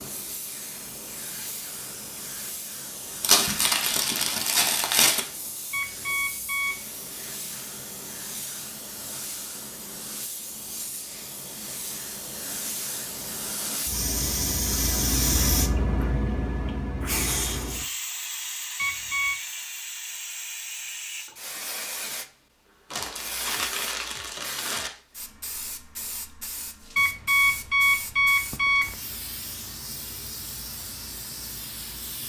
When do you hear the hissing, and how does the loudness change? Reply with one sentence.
The hissing can be heard from 0.0 to 32.2 s, getting louder then quieter.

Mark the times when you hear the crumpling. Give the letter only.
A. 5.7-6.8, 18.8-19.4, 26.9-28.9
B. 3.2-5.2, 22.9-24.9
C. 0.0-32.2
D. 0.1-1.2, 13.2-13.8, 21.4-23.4
B.